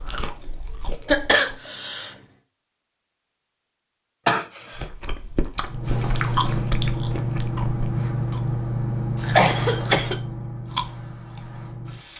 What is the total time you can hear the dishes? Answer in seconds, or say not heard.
not heard.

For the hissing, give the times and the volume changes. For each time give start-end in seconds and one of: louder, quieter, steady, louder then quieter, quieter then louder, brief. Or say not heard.
5.7-12.1 quieter.